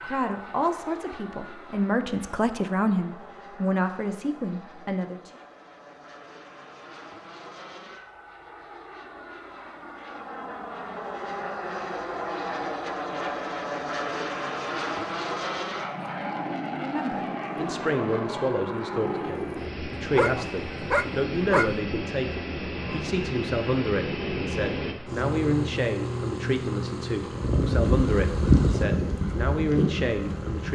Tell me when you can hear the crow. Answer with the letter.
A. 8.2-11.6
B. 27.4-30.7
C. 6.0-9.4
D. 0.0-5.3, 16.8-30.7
B.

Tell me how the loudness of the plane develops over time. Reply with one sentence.
The loudness of the plane goes up.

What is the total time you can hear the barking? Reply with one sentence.
The barking can be heard for 2 seconds in total.